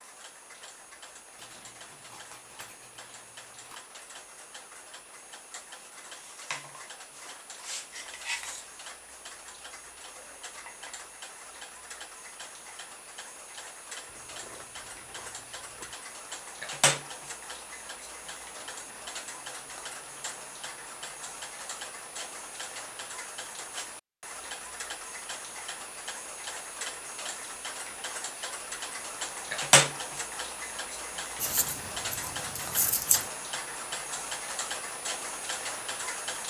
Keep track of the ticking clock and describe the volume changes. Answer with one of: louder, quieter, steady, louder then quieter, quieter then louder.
louder.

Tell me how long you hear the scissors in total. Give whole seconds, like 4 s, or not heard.
6 s.